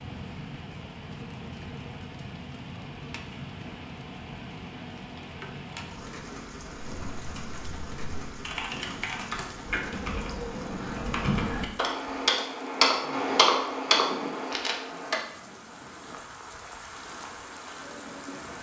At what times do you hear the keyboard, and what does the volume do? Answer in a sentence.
The keyboard can be heard from 7.0 to 15.2 s, getting louder.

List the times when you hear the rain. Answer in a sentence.
You can hear the rain from 0.0 to 18.5 s.